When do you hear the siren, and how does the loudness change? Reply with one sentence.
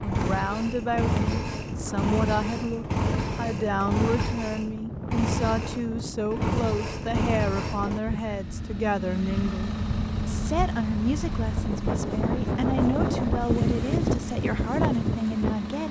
You can't hear the siren here.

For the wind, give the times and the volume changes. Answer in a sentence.
You can hear the wind from 0.0 to 15.8 s, getting louder.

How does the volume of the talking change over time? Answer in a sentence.
The volume of the talking stays about the same.